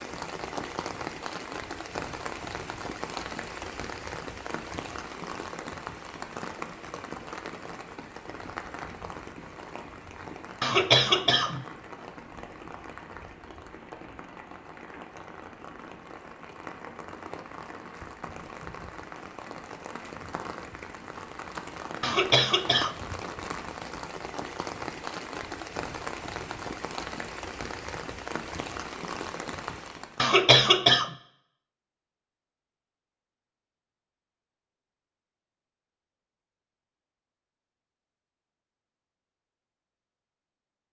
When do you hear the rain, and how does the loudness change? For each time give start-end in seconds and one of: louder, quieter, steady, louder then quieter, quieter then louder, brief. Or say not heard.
0.0-30.3 quieter then louder.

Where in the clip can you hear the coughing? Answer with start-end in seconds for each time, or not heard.
10.6-11.7, 22.0-22.9, 30.2-31.1.